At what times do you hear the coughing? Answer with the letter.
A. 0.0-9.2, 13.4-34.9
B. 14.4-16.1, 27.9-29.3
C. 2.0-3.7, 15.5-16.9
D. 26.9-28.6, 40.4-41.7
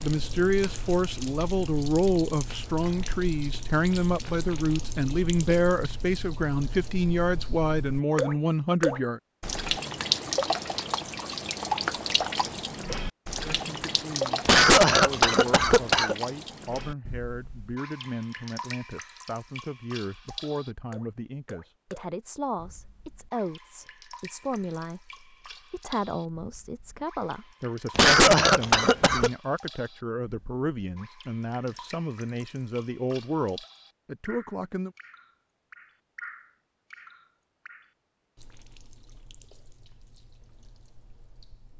B.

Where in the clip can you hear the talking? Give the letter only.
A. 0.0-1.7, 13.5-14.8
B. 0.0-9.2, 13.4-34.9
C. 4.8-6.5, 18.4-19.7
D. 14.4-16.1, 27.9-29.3
B.